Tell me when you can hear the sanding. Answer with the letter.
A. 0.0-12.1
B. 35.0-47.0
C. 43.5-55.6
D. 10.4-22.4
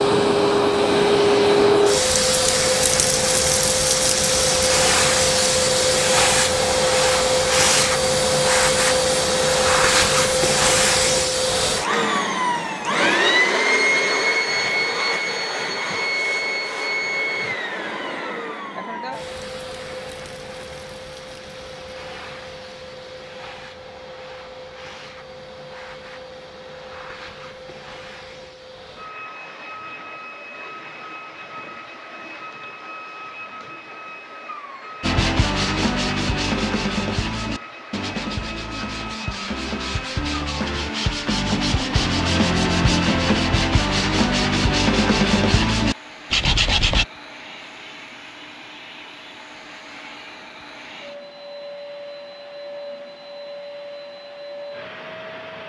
B.